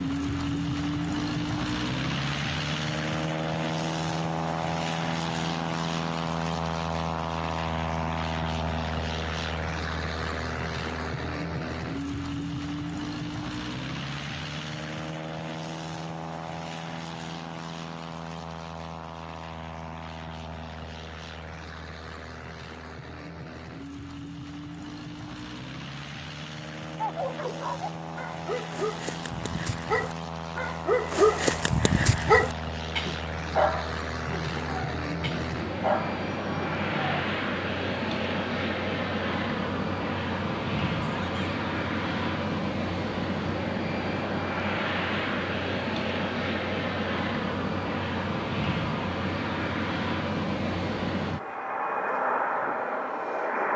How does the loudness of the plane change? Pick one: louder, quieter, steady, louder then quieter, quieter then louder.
quieter then louder.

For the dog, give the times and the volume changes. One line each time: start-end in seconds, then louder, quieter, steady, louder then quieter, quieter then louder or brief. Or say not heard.
27.0-37.2 louder then quieter.